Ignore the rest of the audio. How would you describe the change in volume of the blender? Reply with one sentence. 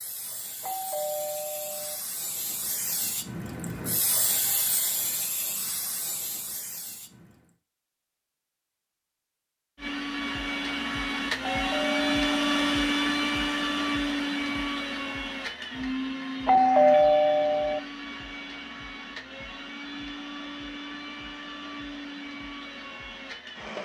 The loudness of the blender goes down.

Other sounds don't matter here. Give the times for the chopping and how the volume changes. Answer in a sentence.
You can't hear the chopping here.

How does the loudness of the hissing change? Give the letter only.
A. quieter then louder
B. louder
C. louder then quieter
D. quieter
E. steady
C.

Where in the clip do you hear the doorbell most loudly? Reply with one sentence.
The volume of the doorbell peaks at 17 seconds.